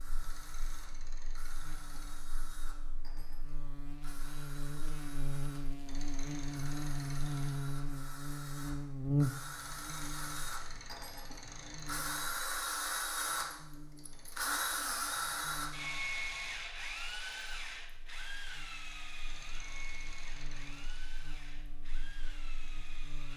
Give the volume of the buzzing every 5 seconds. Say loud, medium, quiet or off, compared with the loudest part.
quiet, loud, quiet, quiet, quiet.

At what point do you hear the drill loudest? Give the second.
15 s.